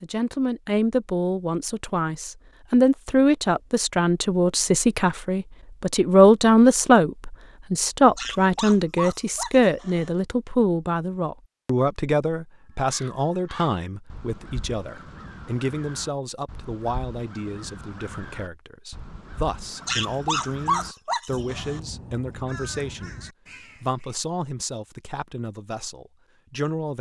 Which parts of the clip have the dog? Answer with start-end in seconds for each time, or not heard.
8.1-10.1, 19.8-21.8.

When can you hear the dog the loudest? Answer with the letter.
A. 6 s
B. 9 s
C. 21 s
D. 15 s
C.